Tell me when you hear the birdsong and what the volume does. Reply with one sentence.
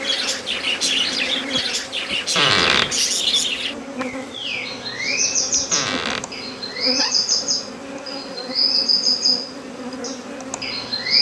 You can hear the birdsong from 0.0 to 11.1 s, at a steady volume.